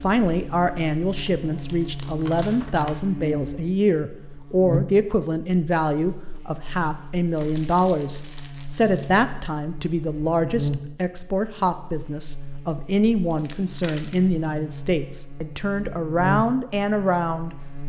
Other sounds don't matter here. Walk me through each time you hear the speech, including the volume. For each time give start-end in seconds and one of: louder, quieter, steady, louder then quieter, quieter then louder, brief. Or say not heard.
0.0-17.8 steady.